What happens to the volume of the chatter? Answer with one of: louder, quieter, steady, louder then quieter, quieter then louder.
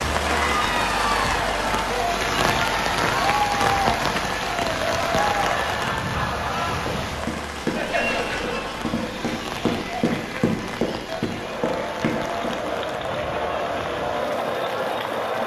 quieter then louder.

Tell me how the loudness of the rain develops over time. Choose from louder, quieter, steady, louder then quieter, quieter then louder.
quieter.